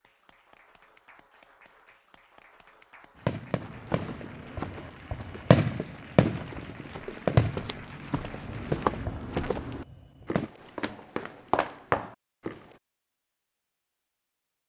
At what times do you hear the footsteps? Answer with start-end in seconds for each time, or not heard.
3.6-12.7.